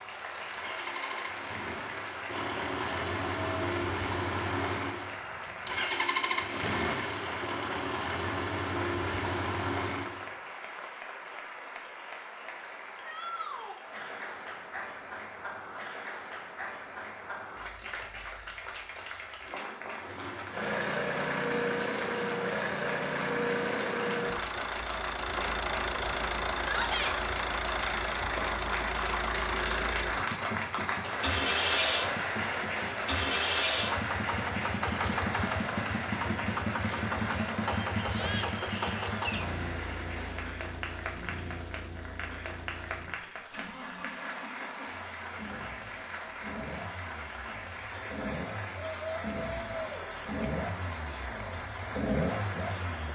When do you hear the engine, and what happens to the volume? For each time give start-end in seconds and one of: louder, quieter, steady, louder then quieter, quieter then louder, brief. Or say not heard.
0.1-10.2 louder
20.0-53.1 quieter then louder.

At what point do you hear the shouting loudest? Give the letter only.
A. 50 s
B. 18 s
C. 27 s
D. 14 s
C.